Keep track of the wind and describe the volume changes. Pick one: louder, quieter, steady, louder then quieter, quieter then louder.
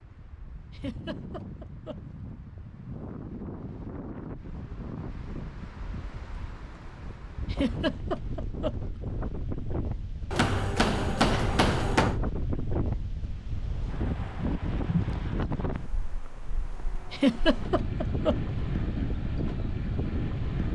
louder.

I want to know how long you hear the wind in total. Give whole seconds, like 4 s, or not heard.
21 s.